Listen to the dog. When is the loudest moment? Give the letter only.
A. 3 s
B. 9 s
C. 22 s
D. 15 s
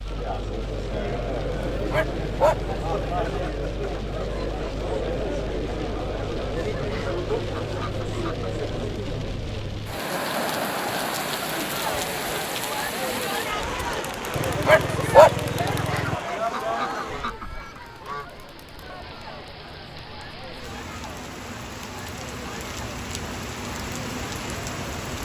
D.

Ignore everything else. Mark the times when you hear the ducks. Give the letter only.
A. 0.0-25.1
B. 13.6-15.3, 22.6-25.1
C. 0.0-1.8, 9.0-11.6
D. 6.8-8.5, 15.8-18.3
D.